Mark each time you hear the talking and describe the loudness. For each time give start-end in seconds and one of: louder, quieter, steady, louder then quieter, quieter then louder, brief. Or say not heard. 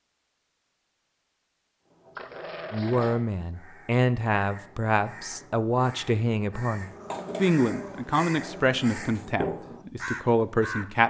2.7-11.0 steady.